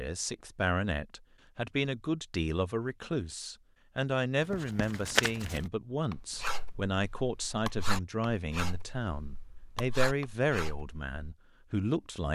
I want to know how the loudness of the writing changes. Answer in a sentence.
The volume of the writing goes down.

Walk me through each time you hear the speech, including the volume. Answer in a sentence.
You can hear the speech from 0.0 to 12.3 s, at a steady volume.